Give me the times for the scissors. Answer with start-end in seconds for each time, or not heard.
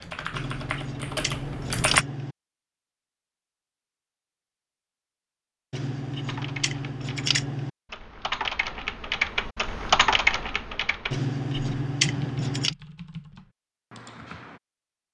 0.3-2.4, 5.7-7.7, 11.1-12.8.